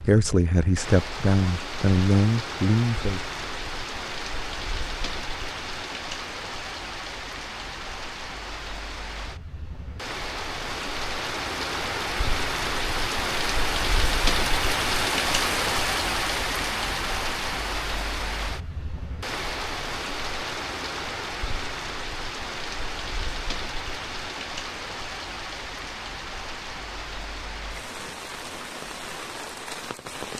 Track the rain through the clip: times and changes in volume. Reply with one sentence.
The rain can be heard from 0.0 to 30.3 s, getting louder then quieter.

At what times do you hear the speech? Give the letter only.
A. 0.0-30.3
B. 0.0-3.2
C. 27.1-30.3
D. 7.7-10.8
B.